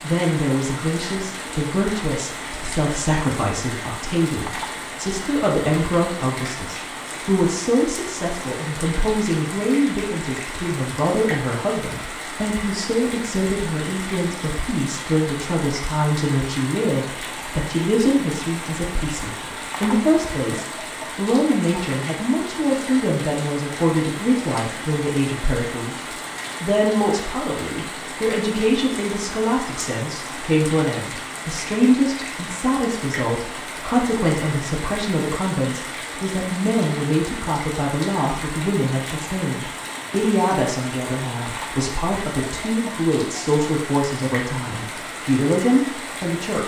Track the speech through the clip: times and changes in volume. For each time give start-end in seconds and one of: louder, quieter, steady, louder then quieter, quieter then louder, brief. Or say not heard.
0.0-46.6 steady.